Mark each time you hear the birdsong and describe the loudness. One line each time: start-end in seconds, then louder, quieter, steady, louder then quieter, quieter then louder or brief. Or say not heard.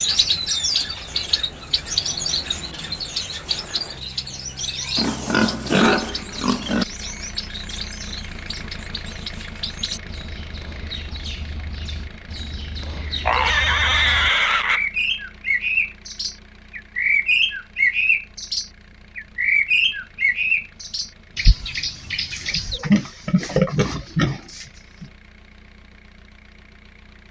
0.0-22.8 quieter then louder.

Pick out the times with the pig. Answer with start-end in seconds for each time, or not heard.
5.0-6.8, 13.2-14.8, 22.3-25.1.